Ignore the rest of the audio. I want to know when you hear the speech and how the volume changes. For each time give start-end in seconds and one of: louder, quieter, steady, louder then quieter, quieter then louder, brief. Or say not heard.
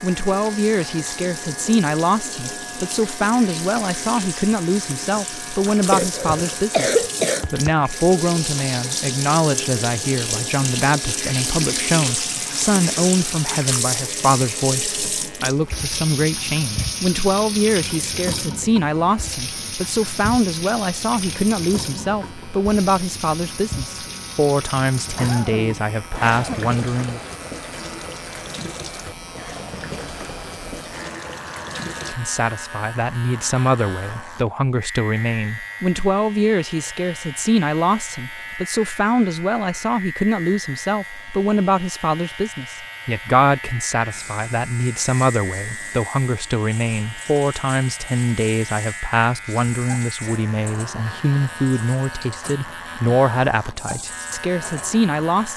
0.0-27.2 steady
32.0-55.5 steady.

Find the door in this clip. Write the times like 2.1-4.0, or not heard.
not heard.